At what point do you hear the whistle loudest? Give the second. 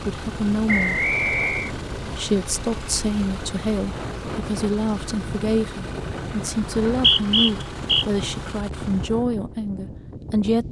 7 s.